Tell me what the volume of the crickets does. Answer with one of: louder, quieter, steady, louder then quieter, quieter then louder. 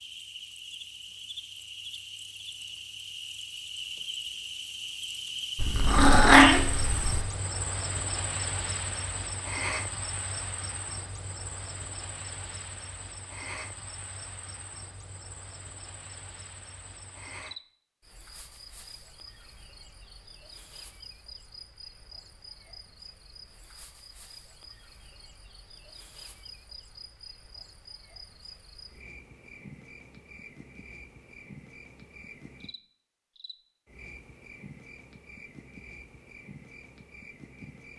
quieter.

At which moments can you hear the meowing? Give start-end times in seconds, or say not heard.
5.5-7.2.